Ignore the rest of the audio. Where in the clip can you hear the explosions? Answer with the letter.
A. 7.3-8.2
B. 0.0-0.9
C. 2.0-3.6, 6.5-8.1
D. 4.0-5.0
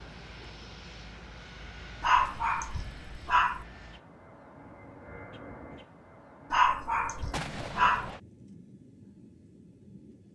A.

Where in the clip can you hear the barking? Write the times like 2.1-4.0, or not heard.
2.0-3.6, 6.5-8.1.